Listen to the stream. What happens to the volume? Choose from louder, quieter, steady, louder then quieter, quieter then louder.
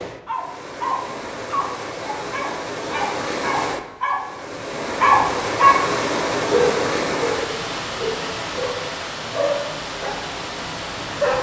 louder then quieter.